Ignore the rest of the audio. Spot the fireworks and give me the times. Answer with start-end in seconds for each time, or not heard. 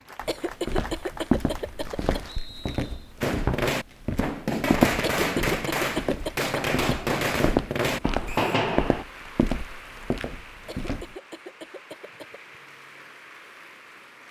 3.2-9.1.